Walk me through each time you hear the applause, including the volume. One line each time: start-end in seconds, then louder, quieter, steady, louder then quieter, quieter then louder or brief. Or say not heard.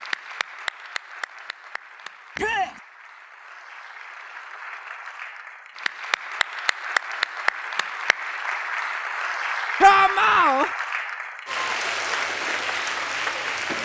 0.0-13.8 louder.